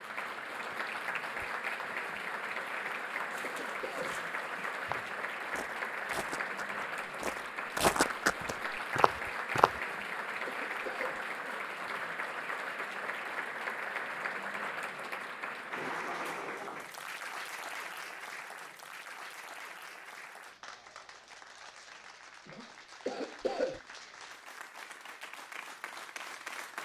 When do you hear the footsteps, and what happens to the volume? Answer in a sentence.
You can hear the footsteps from 3.3 to 9.7 s, getting louder.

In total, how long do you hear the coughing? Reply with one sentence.
The coughing can be heard for 4 seconds in total.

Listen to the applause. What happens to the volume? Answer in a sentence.
The volume of the applause goes down.